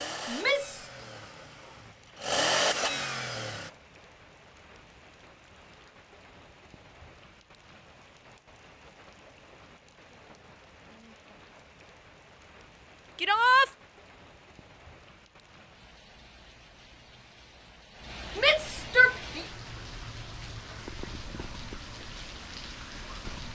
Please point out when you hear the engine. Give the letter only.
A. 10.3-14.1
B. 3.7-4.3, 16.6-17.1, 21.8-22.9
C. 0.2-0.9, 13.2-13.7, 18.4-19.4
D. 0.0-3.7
D.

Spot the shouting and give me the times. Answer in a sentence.
The shouting can be heard from 0.2 to 0.9 s, from 13.2 to 13.7 s and from 18.4 to 19.4 s.